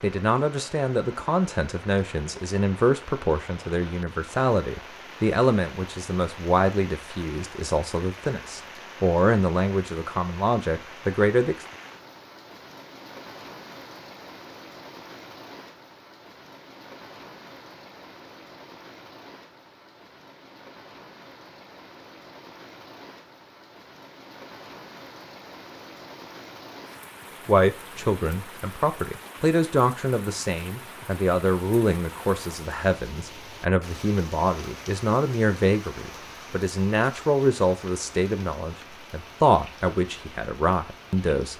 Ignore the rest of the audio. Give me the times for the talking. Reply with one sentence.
You can hear the talking from 0.0 to 11.6 s and from 27.4 to 41.5 s.